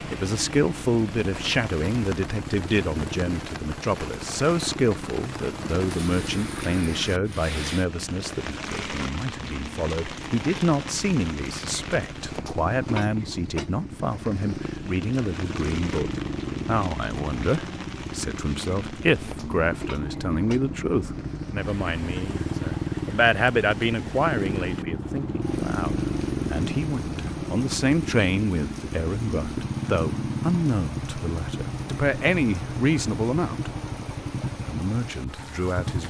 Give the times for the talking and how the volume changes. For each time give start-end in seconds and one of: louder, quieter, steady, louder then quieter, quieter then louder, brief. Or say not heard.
0.0-33.7 steady
34.6-36.0 brief.